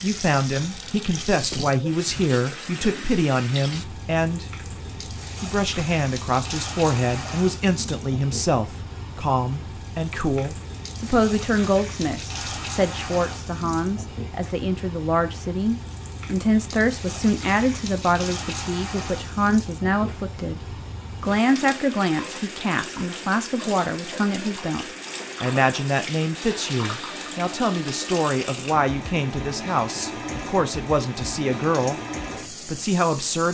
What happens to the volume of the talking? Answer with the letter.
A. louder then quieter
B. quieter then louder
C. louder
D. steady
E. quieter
D.